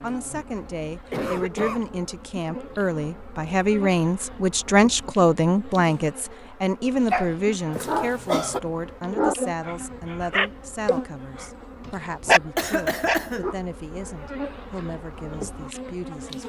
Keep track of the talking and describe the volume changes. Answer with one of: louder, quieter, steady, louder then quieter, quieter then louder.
louder then quieter.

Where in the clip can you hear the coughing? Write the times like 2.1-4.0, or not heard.
1.1-1.9, 7.8-8.6, 12.6-13.4.